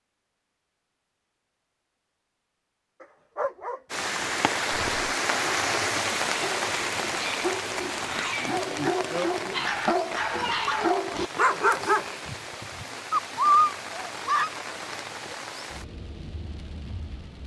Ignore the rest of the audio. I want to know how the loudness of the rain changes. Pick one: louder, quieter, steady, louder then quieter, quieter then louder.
quieter.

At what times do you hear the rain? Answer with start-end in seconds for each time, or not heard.
3.9-17.4.